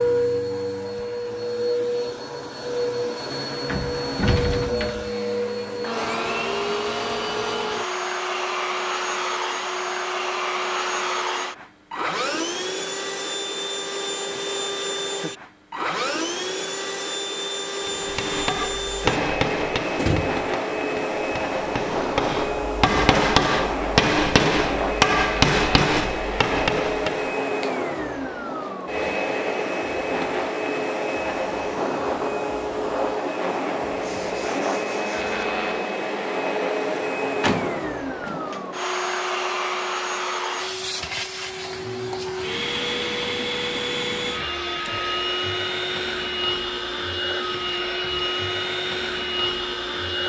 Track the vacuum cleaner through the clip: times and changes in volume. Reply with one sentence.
The vacuum cleaner can be heard from 0.0 to 50.2 s, at a steady volume.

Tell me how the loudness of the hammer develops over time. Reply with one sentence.
The loudness of the hammer goes down, then up.